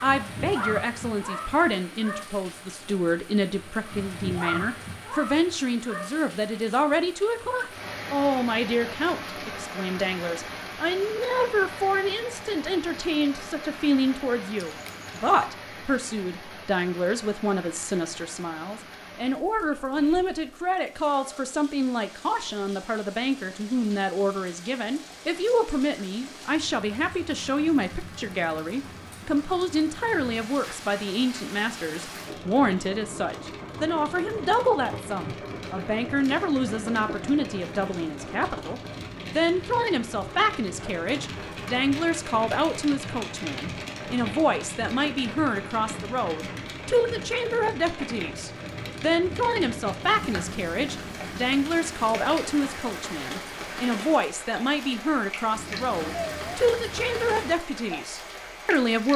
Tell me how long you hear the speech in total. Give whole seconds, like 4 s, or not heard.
59 s.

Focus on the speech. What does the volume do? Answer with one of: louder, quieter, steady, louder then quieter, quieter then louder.
steady.